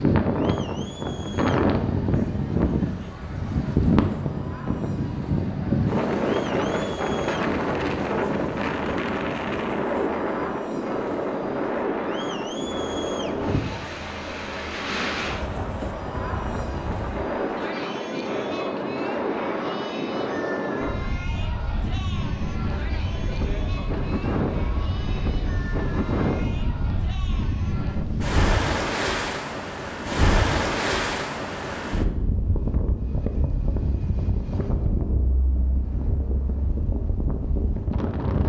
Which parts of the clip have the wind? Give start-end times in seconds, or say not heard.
0.0-38.4.